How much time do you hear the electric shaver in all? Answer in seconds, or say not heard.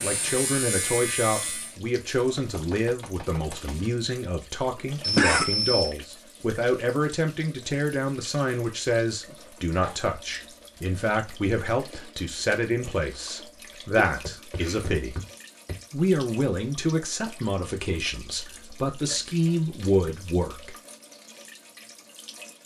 2 s.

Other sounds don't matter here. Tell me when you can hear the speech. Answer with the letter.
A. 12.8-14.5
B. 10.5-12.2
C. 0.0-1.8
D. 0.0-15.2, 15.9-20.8
D.